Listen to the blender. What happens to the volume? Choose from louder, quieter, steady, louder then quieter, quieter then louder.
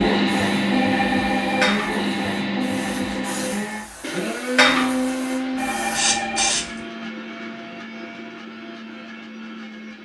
quieter.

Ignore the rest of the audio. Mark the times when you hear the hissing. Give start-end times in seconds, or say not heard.
0.0-6.7.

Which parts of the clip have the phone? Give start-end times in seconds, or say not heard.
0.7-1.8, 5.5-6.6.